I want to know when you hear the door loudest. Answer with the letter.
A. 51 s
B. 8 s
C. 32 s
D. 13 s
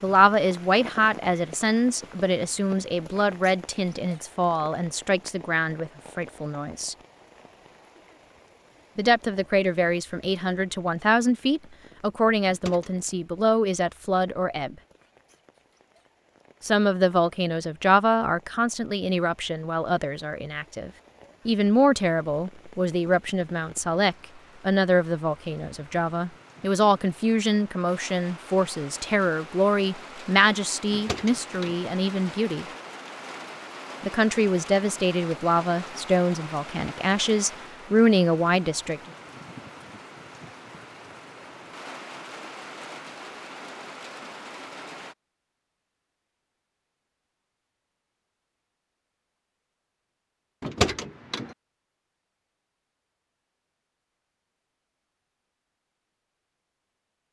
A.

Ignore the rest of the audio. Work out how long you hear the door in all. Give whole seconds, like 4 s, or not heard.
2 s.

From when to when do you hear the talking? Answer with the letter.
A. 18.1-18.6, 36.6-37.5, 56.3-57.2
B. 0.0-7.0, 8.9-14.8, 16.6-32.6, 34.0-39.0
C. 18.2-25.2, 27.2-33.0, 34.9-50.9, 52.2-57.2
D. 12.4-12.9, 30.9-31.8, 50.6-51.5
B.